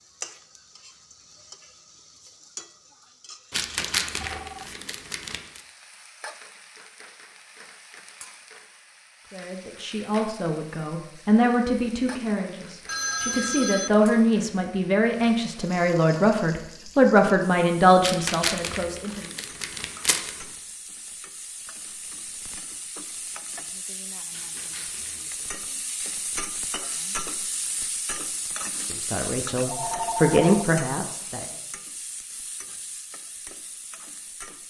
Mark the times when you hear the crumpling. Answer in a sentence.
The crumpling can be heard from 3.5 to 5.6 s, from 18.0 to 20.6 s and from 24.3 to 25.4 s.